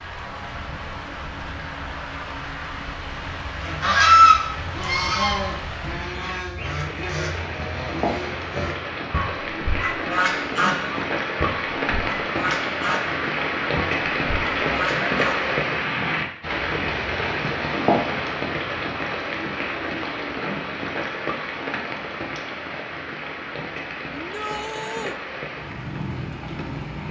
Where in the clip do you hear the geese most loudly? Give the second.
4 s.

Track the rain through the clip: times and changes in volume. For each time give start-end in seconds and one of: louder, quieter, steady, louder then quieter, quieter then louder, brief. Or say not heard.
0.0-27.0 louder then quieter.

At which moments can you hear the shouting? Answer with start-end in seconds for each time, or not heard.
24.1-25.2.